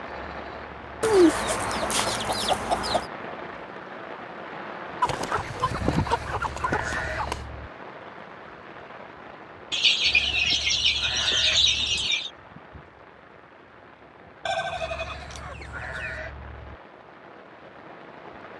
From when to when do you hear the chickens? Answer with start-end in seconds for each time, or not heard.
1.0-3.0, 5.0-7.4, 9.7-12.3, 14.4-16.2.